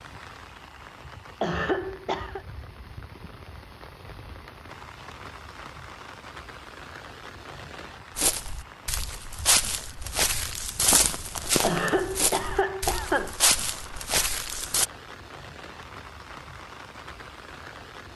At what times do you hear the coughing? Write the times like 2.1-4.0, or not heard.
1.4-2.5, 11.6-13.4.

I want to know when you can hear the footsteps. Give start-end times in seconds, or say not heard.
8.2-14.8.